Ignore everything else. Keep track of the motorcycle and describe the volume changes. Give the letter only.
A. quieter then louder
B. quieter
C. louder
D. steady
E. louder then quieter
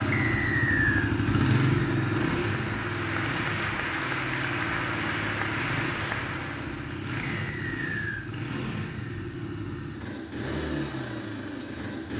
B.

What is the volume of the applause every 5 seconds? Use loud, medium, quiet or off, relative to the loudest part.
loud, loud, off.